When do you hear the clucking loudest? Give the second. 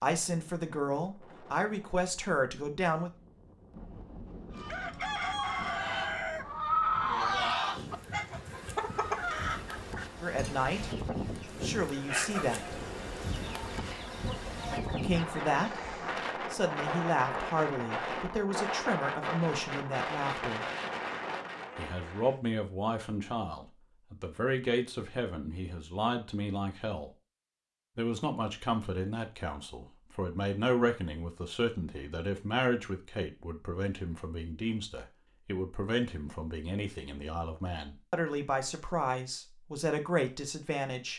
7 s.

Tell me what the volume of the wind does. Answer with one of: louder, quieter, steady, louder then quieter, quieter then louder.
louder.